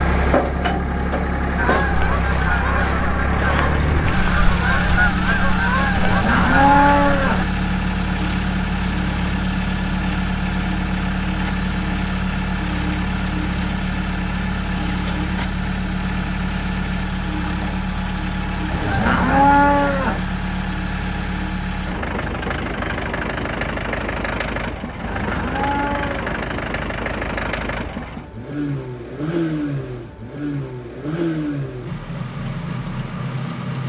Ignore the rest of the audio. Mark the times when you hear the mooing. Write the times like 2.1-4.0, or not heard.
6.0-7.5, 18.7-20.2, 24.9-26.2.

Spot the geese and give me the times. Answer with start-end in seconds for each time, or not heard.
1.6-7.5.